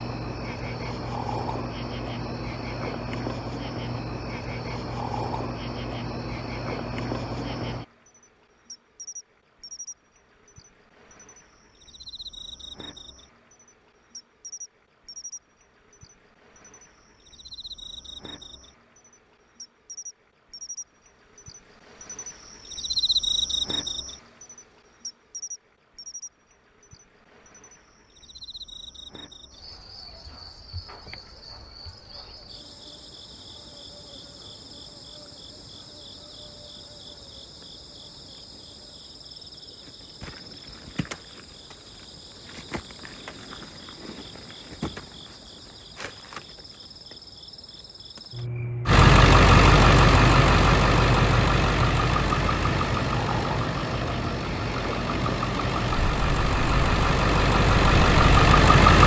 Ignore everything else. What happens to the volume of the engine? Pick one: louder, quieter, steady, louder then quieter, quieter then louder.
quieter then louder.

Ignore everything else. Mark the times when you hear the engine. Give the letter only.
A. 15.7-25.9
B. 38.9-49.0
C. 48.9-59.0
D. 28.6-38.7
C.